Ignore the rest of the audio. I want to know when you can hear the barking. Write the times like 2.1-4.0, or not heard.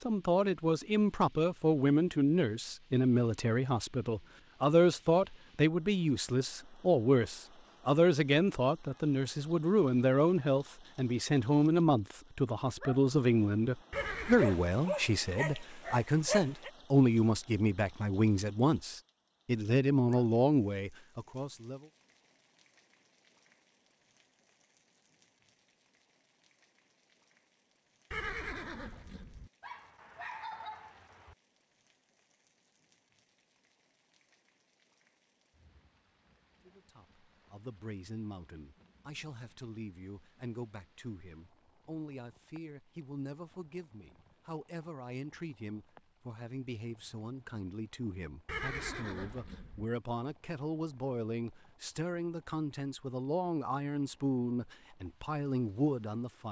13.9-16.7, 29.6-31.4.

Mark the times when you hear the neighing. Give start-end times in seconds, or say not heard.
13.9-14.7, 28.1-29.5, 48.5-49.9.